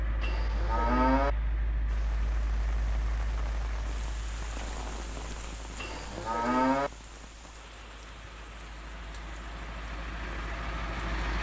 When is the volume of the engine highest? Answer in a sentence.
The volume of the engine peaks at 11 seconds.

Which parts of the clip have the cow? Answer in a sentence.
The cow can be heard from 0.2 to 1.4 s and from 5.8 to 6.9 s.